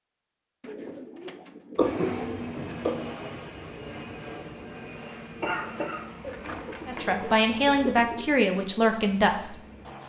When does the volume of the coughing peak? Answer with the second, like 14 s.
2 s.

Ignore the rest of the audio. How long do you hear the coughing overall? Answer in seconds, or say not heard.
3 s.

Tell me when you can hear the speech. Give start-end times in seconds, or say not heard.
6.8-9.6.